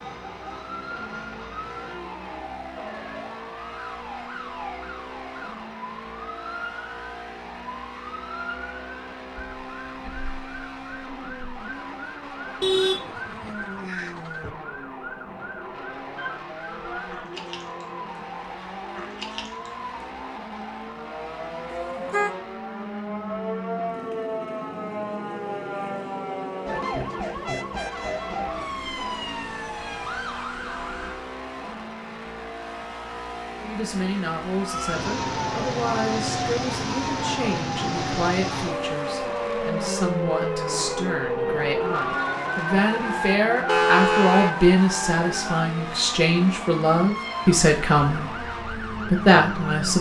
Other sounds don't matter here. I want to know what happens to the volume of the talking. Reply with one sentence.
The volume of the talking goes up.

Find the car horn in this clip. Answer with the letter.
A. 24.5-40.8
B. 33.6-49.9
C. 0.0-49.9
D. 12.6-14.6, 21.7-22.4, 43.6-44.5
D.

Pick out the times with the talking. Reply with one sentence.
The talking can be heard from 33.6 to 49.9 s.